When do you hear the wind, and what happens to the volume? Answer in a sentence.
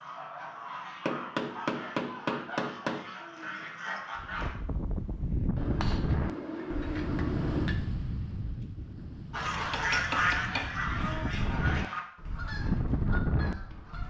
The wind can be heard from 4.2 to 14.0 s, getting quieter then louder.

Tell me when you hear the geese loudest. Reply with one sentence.
The volume of the geese peaks at 10 seconds.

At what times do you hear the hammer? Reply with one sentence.
The hammer can be heard from 1.1 to 3.0 s, from 5.5 to 7.8 s and from 9.7 to 11.6 s.